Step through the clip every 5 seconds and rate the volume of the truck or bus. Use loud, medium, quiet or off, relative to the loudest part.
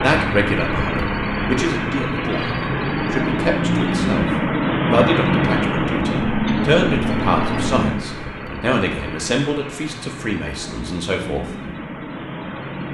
loud, loud, medium.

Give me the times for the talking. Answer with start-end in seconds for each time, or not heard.
0.0-11.6.